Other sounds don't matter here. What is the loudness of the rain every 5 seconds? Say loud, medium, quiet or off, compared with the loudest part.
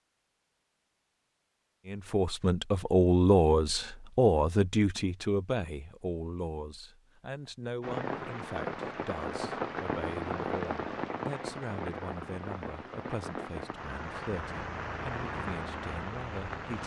off, loud, loud, loud.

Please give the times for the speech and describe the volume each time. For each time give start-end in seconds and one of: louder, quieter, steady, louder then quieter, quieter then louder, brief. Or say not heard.
1.9-16.8 quieter.